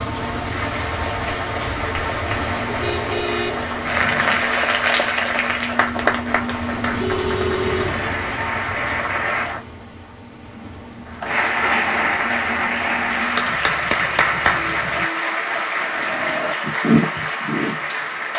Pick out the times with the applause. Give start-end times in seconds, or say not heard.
0.0-9.6, 11.1-18.3.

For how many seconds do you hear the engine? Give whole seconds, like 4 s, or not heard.
15 s.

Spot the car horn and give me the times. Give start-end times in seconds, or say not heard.
2.7-4.4, 7.0-8.1, 14.5-16.6.